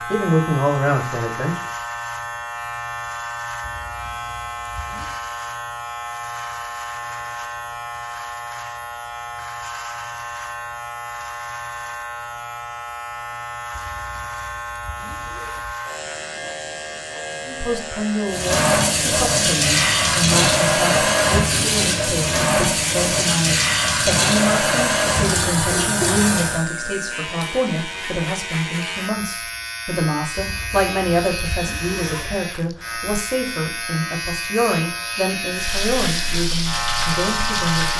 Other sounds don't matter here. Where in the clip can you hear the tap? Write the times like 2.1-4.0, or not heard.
18.2-26.6, 35.5-37.9.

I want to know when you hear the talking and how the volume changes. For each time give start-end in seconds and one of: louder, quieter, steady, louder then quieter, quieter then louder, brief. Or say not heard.
0.1-1.6 brief
17.4-37.9 steady.